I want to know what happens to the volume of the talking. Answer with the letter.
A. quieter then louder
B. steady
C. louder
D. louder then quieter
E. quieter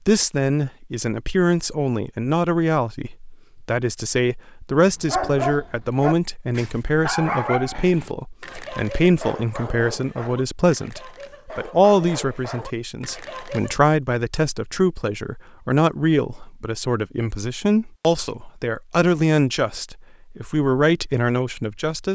B.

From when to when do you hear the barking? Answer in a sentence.
The barking can be heard from 4.8 to 13.8 s.